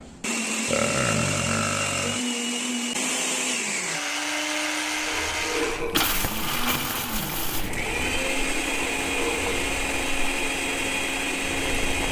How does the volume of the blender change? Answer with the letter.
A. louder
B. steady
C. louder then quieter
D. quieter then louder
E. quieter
B.